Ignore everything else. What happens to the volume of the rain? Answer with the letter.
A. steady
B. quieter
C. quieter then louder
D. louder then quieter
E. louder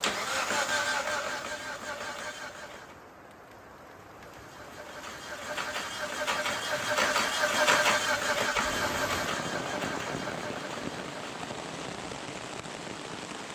E.